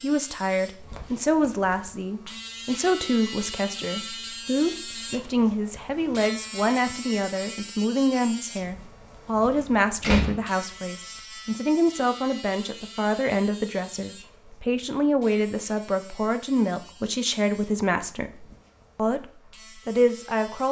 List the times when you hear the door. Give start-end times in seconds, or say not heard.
9.5-10.3.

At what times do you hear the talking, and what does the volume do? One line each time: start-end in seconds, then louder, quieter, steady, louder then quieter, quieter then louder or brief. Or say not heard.
0.0-20.6 steady.